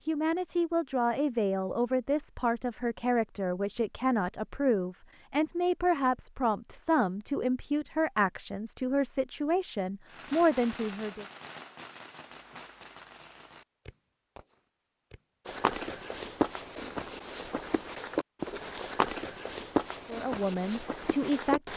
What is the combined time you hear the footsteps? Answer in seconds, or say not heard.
6 s.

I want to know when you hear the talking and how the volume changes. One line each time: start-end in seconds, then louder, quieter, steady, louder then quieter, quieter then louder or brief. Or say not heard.
0.1-11.2 steady
20.1-21.7 brief.